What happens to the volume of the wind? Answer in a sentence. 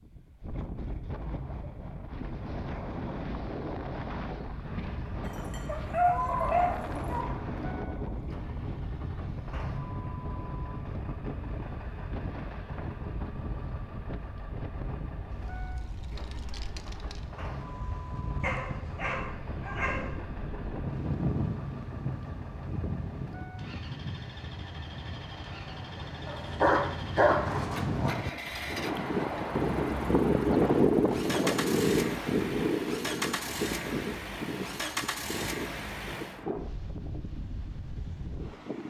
The volume of the wind goes up.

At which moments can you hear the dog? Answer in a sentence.
You can hear the dog from 5.2 to 7.2 s, from 18.4 to 20.1 s and from 26.2 to 28.2 s.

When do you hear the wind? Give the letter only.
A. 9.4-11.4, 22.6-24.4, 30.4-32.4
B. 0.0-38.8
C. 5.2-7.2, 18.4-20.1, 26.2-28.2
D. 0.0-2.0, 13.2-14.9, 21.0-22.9
B.